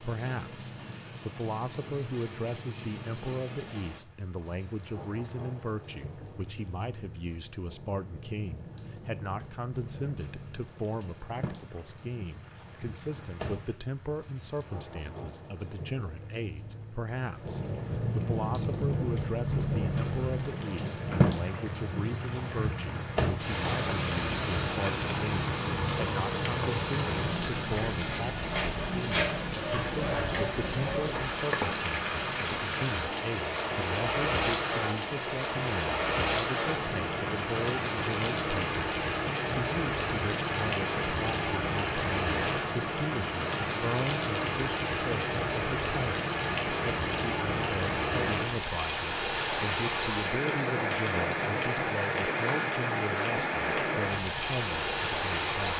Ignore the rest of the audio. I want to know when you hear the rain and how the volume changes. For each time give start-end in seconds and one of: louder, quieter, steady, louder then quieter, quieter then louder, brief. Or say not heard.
0.0-55.7 louder.